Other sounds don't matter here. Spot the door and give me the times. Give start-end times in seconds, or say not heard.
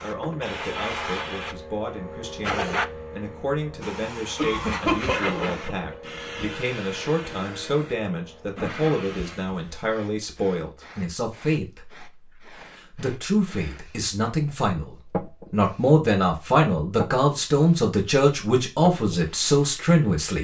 not heard.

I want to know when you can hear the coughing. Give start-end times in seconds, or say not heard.
4.3-6.0.